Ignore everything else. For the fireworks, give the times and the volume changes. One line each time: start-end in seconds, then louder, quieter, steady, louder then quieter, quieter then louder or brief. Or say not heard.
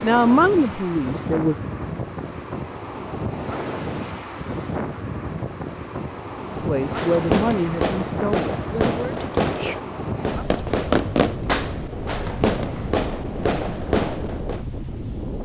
6.8-14.7 steady.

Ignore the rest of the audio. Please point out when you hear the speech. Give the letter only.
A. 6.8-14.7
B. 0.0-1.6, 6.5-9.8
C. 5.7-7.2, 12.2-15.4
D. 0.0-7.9
B.